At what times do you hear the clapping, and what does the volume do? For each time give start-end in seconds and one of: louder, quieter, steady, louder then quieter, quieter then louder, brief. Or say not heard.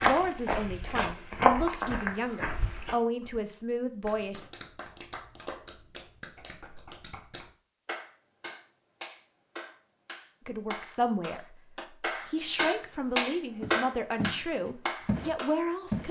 4.0-15.6 louder.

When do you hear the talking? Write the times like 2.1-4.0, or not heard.
0.0-4.5, 10.4-16.0.